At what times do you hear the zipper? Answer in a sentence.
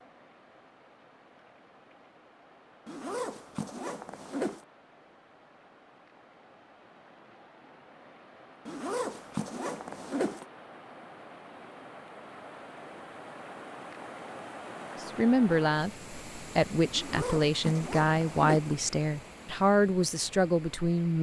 You can hear the zipper from 2.9 to 4.7 s, from 8.7 to 10.4 s and from 16.9 to 18.8 s.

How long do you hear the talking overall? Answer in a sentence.
The talking can be heard for 6 seconds in total.